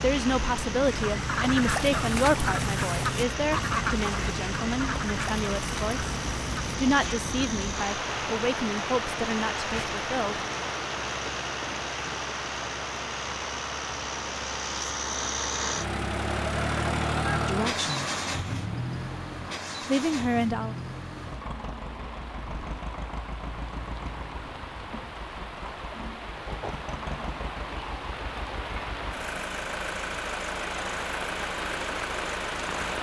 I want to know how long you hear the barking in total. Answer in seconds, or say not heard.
not heard.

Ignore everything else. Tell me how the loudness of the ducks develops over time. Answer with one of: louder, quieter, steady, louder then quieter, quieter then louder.
quieter.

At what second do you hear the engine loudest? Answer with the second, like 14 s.
17 s.